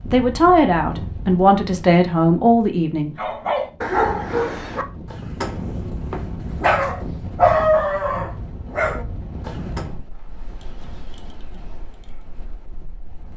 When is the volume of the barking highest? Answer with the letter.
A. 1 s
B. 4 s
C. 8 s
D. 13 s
C.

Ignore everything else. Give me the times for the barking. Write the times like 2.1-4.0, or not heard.
3.1-9.8.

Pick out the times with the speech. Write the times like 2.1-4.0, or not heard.
0.1-3.2.